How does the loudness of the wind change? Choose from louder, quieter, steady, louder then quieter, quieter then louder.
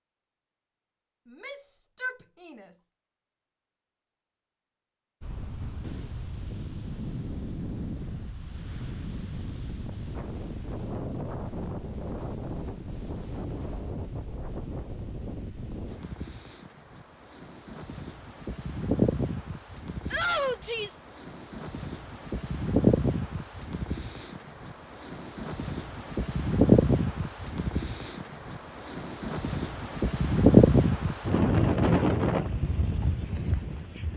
louder.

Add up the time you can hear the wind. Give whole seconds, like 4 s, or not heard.
29 s.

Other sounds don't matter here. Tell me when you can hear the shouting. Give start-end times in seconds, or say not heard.
1.2-2.7, 20.1-21.1.